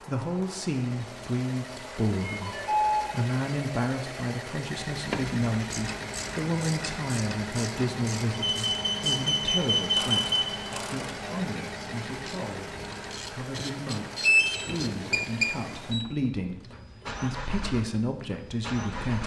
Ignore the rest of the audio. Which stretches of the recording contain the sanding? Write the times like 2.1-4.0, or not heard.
not heard.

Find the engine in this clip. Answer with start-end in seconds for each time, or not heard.
0.0-19.2.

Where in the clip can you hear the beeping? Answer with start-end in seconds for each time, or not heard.
2.2-3.1, 8.5-10.6, 14.2-16.1.